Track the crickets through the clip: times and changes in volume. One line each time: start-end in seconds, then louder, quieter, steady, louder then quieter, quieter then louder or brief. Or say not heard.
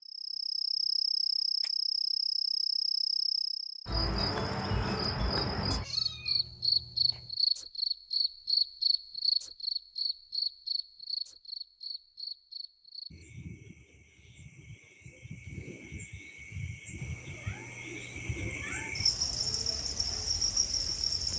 0.1-21.3 quieter then louder.